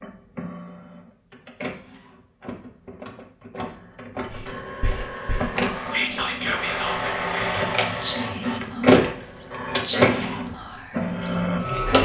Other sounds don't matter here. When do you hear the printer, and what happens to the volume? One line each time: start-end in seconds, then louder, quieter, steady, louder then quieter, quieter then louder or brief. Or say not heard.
0.0-12.0 louder.